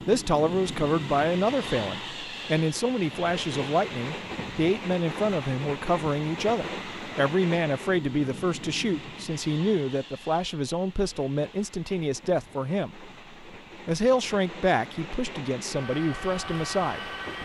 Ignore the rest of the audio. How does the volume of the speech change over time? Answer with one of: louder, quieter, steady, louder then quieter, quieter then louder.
steady.